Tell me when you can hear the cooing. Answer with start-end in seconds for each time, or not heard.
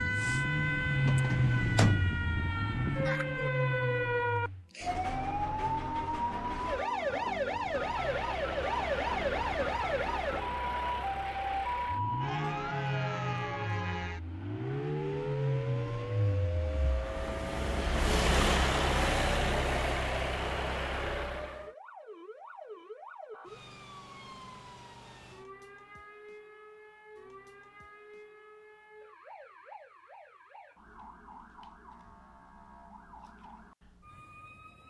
not heard.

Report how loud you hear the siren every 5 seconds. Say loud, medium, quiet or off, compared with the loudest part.
loud, loud, loud, medium, quiet, quiet, quiet.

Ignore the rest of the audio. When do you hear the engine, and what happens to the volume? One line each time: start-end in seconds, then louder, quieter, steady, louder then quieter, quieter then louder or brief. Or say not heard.
0.0-4.7 quieter then louder
7.7-21.7 louder.